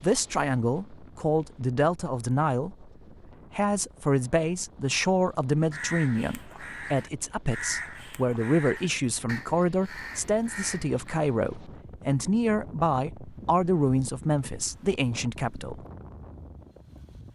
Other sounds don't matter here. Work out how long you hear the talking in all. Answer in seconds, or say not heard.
15 s.